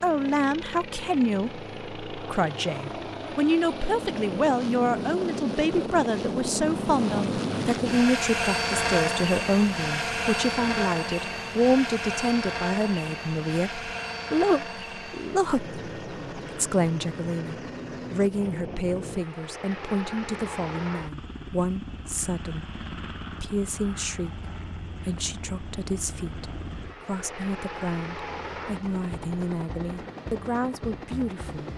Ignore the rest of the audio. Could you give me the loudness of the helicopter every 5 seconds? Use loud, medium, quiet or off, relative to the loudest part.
medium, loud, loud, medium, medium, medium, medium.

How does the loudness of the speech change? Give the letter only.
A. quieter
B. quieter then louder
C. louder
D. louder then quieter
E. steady
A.